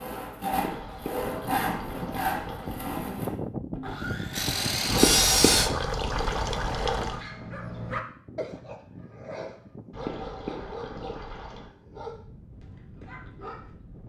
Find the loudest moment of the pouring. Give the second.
5 s.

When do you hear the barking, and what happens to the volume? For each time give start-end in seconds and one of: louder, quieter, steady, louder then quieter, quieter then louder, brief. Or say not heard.
7.1-13.7 quieter.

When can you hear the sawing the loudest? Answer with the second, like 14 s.
5 s.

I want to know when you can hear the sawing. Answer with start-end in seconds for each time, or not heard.
0.0-5.7.